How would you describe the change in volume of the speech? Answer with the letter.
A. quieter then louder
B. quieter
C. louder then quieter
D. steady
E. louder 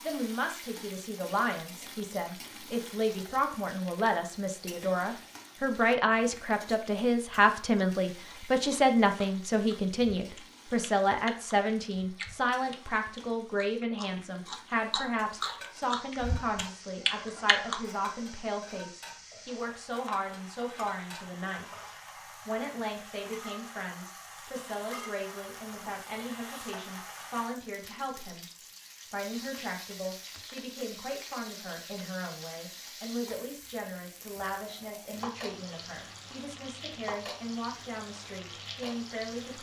B.